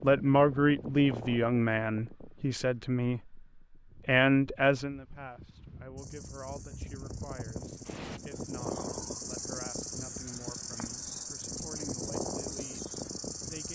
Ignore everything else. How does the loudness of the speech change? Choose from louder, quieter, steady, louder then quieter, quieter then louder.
quieter.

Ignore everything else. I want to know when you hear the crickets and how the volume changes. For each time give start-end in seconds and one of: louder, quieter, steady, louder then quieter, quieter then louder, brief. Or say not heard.
6.0-13.7 louder.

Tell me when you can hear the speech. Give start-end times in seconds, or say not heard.
0.0-13.7.